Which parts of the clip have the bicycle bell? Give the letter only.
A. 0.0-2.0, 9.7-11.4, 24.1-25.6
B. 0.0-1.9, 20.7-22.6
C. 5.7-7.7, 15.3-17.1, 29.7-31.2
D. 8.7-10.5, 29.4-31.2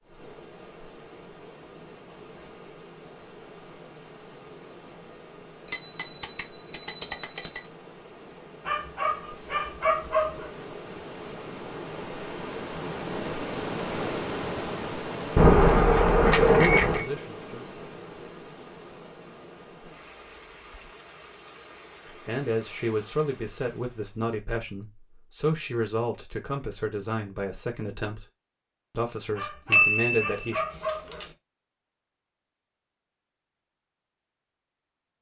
C.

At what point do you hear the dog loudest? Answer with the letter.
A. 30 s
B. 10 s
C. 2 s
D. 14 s
B.